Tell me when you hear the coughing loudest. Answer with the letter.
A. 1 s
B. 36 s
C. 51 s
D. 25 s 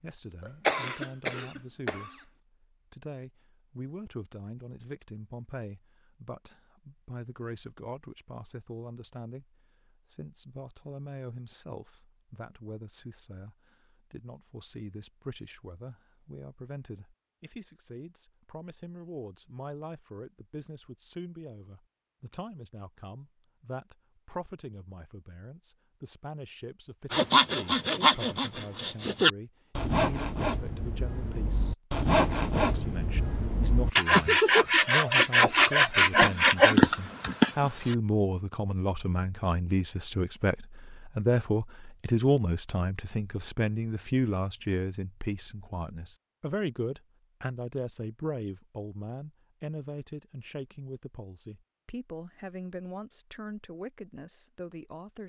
A.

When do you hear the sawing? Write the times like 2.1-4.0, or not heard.
27.1-38.0.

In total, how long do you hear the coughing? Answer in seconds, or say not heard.
2 s.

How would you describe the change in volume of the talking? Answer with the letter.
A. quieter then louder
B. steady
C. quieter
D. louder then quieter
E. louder
D.